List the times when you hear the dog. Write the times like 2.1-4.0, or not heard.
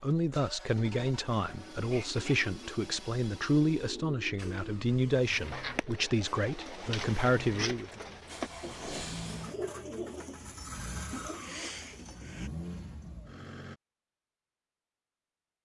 not heard.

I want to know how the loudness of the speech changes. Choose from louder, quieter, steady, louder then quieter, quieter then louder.
steady.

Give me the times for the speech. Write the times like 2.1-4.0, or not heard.
0.0-8.0.